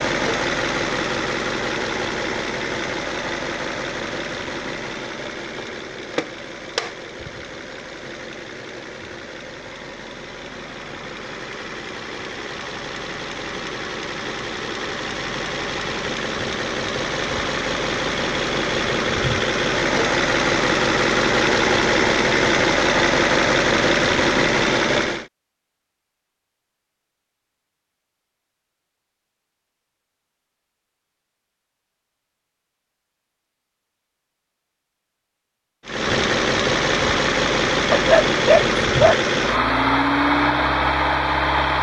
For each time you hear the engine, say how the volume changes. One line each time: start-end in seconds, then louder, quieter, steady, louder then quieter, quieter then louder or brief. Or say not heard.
0.0-25.2 quieter then louder
35.9-41.7 steady.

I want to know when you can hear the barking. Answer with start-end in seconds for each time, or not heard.
37.9-39.3.